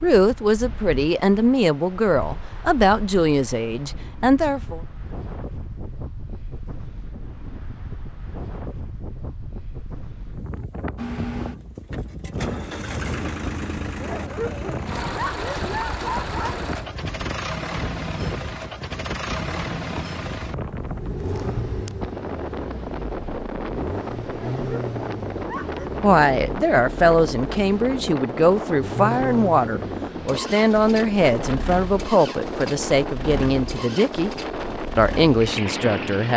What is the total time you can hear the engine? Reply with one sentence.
You can hear the engine for 25 seconds altogether.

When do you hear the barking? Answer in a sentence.
You can hear the barking from 14.0 to 16.6 s and from 24.3 to 26.0 s.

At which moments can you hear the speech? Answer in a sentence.
You can hear the speech from 0.0 to 4.8 s, from 26.0 to 34.3 s and from 35.0 to 36.3 s.